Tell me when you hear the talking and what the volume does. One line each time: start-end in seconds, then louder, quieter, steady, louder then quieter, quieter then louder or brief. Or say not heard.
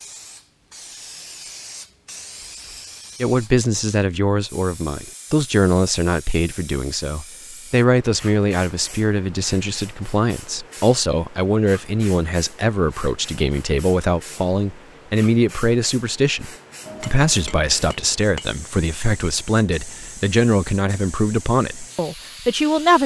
3.2-23.0 steady.